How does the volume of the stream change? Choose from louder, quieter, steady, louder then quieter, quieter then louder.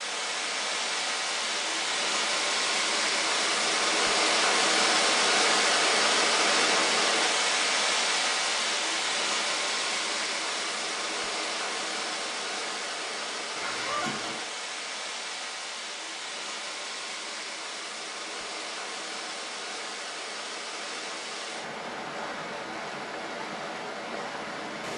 quieter.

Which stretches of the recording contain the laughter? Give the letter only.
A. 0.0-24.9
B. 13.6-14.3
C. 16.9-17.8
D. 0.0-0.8
B.